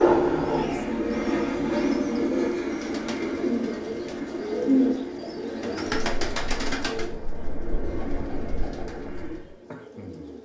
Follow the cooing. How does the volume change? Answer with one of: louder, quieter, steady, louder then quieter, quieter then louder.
louder then quieter.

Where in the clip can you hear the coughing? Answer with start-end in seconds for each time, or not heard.
not heard.